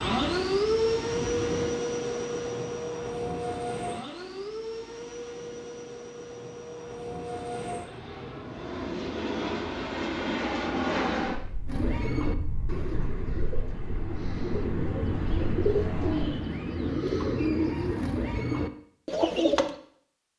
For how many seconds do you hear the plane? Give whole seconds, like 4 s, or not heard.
16 s.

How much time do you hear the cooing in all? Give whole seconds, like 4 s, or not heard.
10 s.